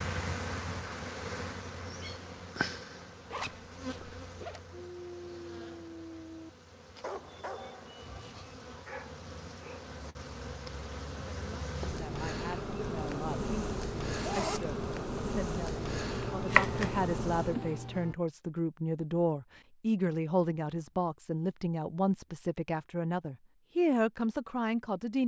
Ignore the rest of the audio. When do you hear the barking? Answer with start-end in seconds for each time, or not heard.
4.7-9.8.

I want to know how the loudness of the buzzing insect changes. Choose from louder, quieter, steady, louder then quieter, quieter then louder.
quieter then louder.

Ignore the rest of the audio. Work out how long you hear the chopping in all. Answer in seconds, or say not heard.
2 s.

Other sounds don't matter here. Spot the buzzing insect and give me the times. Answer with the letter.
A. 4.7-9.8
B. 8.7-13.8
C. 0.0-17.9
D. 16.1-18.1
C.